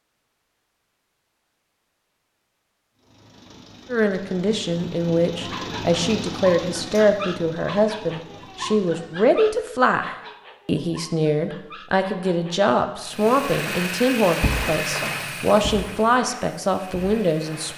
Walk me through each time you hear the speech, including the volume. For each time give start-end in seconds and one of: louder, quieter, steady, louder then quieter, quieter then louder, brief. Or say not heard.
3.9-17.7 steady.